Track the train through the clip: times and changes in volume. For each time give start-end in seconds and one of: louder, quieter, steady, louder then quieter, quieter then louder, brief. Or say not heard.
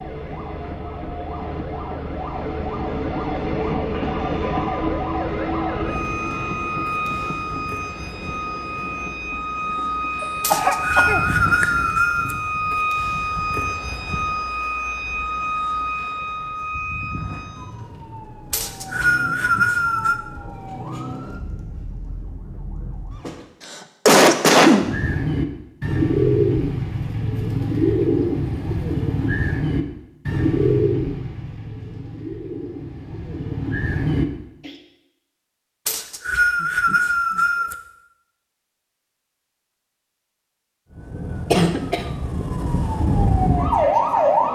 0.0-12.5 louder then quieter.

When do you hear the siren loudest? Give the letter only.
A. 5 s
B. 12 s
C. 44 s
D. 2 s
C.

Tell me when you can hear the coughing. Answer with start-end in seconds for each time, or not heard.
10.2-11.7, 23.6-24.9, 41.5-42.0.